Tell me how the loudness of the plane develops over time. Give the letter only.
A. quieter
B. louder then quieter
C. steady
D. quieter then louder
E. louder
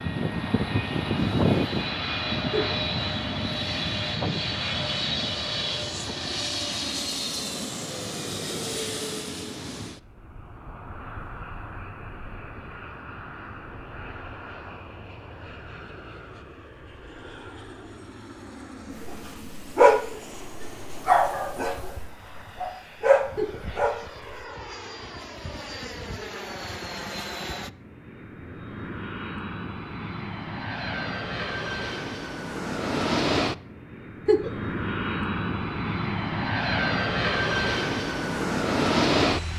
D.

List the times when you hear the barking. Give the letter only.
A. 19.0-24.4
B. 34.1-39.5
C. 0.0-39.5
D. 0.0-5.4
A.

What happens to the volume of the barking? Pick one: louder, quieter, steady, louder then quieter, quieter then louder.
quieter then louder.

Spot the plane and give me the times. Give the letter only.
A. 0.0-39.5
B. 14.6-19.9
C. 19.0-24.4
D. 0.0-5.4
A.